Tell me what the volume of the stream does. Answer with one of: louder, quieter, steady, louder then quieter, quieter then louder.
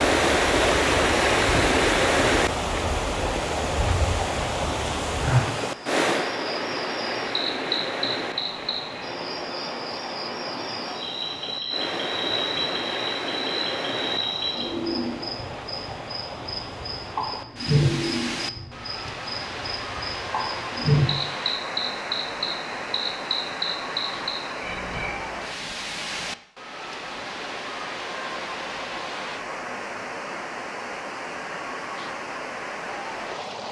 quieter.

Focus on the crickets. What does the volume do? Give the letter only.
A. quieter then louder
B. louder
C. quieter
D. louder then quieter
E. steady
B.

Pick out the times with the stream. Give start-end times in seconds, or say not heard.
0.0-33.6.